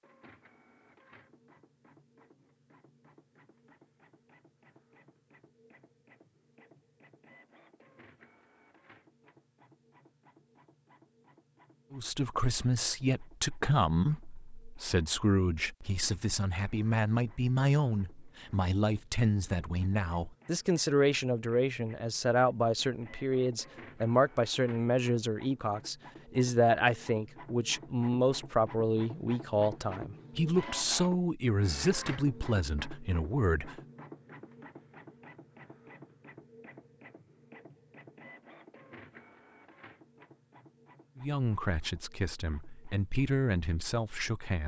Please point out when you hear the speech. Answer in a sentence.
The speech can be heard from 11.9 to 33.8 s and from 41.1 to 44.6 s.